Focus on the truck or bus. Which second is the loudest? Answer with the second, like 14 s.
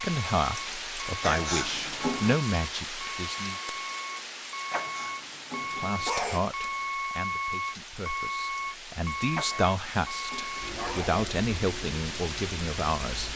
7 s.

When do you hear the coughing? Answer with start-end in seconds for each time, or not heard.
1.2-2.4, 4.7-6.5, 9.5-11.2.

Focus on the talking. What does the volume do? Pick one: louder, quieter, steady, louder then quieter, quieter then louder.
quieter then louder.